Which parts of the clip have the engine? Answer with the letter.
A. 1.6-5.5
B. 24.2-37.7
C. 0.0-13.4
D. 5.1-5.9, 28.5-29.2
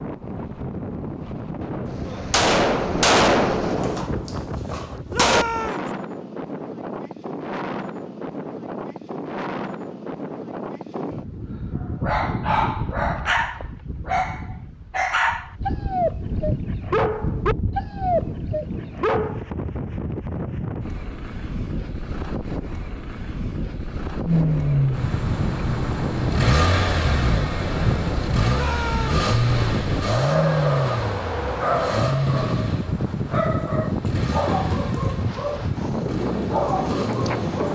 B.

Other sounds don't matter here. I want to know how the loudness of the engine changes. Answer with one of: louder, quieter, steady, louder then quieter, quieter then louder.
quieter.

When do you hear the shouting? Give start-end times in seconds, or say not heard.
5.1-5.9, 28.5-29.2.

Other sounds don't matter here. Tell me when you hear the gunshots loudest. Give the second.
3 s.